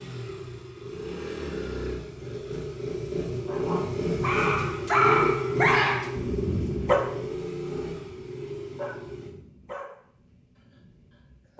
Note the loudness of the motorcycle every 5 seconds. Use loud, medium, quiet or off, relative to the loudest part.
loud, loud, off.